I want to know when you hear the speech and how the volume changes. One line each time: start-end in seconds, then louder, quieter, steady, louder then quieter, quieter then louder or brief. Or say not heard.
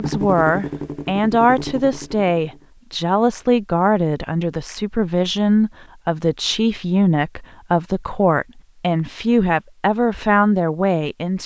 0.0-11.4 steady.